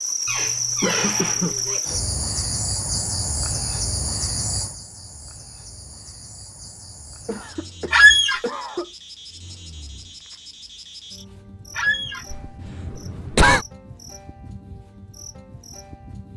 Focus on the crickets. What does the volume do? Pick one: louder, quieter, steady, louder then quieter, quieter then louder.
quieter.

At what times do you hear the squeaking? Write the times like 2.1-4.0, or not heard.
0.2-1.8, 7.9-8.4, 11.8-12.2.